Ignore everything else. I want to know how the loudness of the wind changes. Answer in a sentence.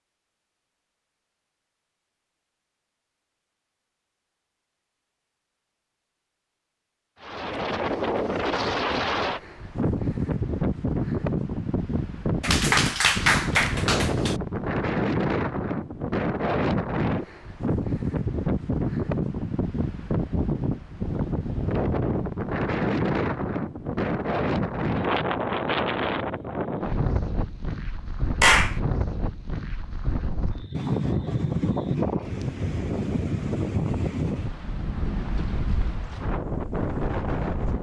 The loudness of the wind stays about the same.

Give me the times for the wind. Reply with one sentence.
You can hear the wind from 7.2 to 37.7 s.